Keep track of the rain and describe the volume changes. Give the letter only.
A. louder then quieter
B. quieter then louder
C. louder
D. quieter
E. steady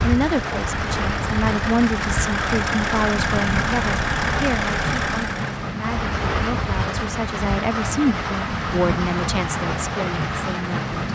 E.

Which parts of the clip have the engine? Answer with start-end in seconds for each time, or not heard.
0.0-5.7.